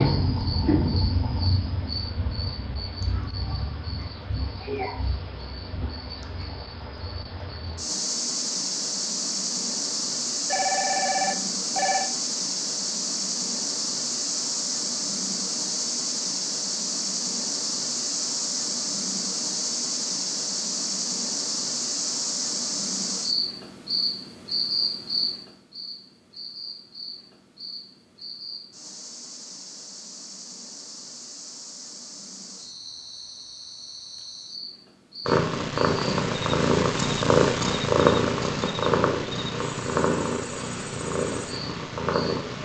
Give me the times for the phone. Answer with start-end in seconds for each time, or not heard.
10.5-12.1.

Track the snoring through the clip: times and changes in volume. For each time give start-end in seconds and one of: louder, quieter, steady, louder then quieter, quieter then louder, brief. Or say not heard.
not heard.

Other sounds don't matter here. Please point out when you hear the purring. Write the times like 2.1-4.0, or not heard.
35.2-42.6.